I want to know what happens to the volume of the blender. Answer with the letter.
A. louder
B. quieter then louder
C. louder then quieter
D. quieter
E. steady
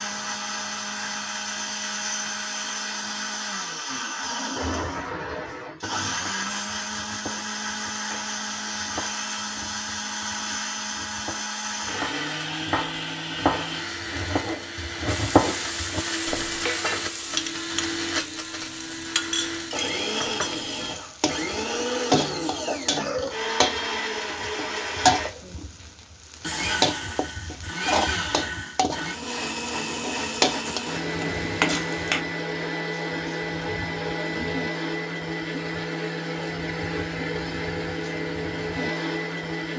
E.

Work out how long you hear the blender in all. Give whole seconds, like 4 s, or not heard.
40 s.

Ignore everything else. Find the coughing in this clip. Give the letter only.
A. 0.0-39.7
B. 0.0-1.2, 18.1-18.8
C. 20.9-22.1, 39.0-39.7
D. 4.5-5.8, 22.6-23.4
D.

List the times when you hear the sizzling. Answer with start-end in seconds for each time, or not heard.
15.1-32.2.